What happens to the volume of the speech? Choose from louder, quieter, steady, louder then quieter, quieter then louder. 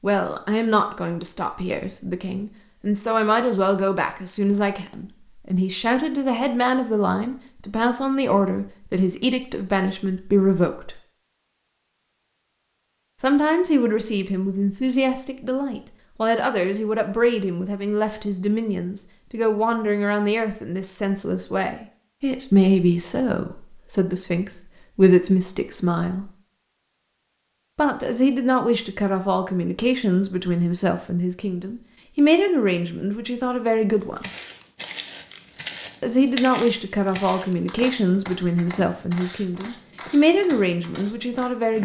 steady.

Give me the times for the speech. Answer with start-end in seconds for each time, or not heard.
0.0-10.9, 13.2-26.3, 27.8-34.3, 36.0-41.8.